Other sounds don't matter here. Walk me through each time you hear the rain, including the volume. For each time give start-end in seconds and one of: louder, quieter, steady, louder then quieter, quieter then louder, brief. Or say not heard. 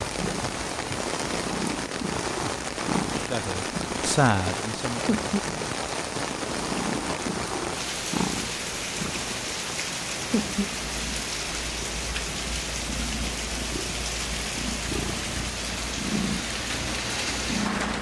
0.0-17.9 steady.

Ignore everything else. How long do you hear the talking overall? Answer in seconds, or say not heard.
2 s.